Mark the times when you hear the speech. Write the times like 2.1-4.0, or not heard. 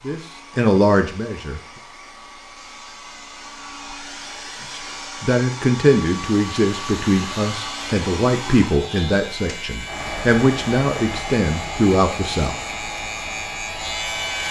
0.0-1.6, 4.7-12.6.